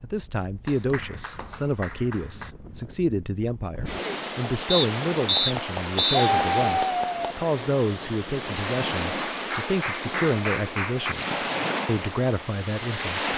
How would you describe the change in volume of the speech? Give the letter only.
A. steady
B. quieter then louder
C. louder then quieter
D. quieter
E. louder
A.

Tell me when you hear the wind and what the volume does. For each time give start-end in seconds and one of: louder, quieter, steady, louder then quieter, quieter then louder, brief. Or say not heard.
0.0-13.3 louder.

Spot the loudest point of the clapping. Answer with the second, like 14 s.
6 s.